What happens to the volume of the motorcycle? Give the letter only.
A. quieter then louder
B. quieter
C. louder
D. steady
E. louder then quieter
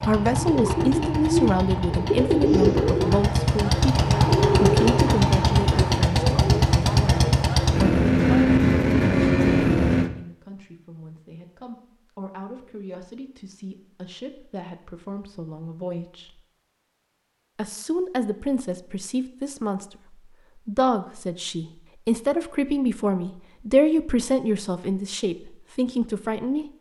C.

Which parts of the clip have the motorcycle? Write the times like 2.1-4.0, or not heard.
0.0-10.1.